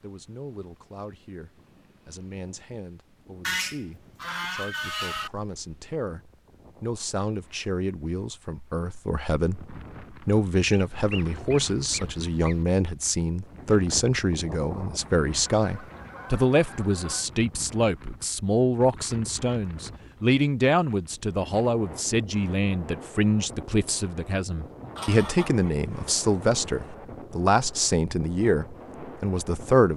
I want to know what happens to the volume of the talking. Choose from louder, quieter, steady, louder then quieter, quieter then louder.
louder.